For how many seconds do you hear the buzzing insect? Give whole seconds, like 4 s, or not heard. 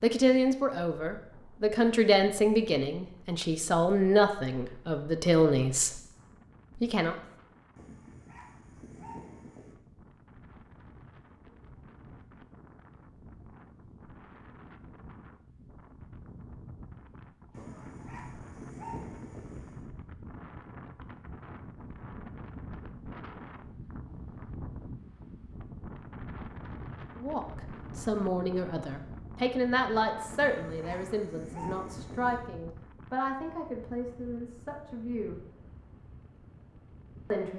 not heard.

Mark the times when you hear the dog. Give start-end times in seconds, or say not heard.
7.8-9.8, 17.5-19.9, 30.2-32.5.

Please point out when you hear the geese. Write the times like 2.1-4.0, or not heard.
not heard.